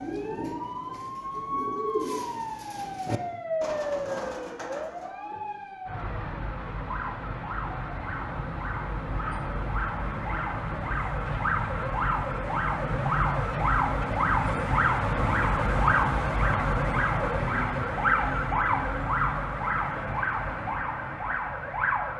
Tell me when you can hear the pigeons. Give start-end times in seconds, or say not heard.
0.0-5.2.